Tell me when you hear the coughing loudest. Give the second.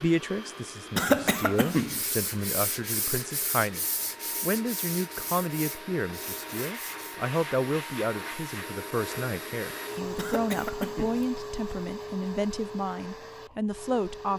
1 s.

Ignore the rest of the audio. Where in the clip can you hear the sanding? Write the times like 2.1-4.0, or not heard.
1.6-7.3.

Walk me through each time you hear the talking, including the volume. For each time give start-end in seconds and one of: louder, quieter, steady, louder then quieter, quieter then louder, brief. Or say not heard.
0.0-14.3 steady.